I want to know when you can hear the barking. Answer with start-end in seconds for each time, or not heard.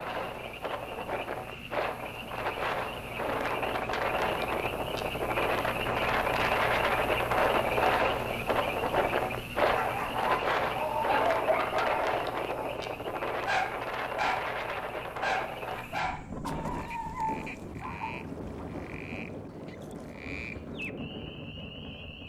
9.8-12.8, 13.4-14.5, 15.2-18.1.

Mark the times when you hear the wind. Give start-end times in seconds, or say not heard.
0.0-22.2.